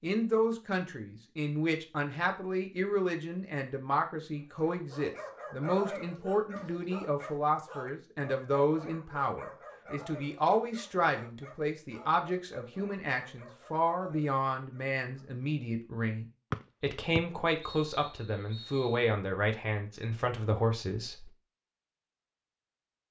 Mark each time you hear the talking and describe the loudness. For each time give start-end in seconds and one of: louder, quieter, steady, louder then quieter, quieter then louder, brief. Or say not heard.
0.0-21.3 steady.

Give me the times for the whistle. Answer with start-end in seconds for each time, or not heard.
16.5-19.1.